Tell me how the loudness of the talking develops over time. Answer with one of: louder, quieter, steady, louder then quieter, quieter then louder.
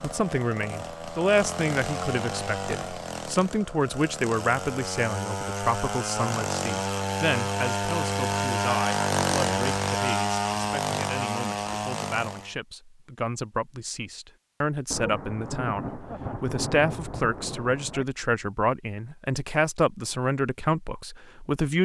quieter then louder.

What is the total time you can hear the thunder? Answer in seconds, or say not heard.
3 s.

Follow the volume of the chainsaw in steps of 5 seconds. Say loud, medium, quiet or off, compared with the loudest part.
medium, loud, loud, off, off.